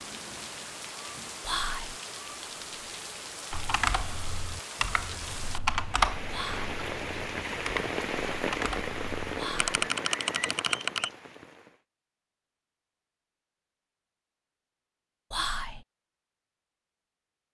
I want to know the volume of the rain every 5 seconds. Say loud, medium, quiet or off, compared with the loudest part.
medium, loud, medium, off.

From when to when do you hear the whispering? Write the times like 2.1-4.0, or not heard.
1.4-2.0, 6.3-6.8, 9.3-9.8, 15.3-15.8.